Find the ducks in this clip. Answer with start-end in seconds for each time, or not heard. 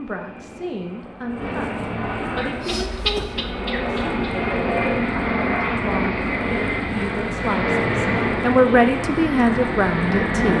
2.2-4.5.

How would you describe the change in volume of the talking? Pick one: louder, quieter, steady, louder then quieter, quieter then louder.
louder.